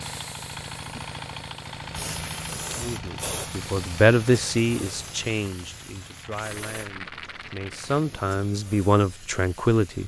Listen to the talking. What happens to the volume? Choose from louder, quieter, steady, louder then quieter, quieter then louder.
quieter then louder.